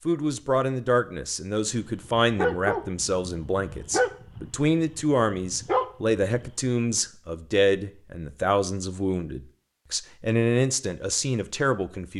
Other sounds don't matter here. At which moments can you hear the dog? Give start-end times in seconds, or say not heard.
1.8-6.5.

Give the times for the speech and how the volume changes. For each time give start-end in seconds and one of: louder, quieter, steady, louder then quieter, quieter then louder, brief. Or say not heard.
0.1-12.1 steady.